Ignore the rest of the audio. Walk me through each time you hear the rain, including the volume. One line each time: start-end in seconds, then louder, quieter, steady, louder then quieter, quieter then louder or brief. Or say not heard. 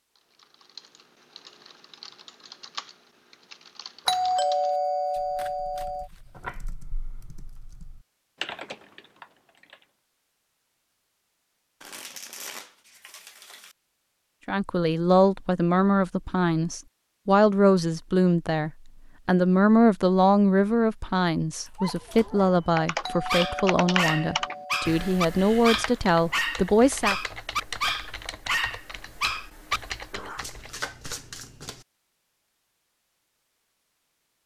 not heard.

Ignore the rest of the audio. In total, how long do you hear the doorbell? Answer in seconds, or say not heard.
4 s.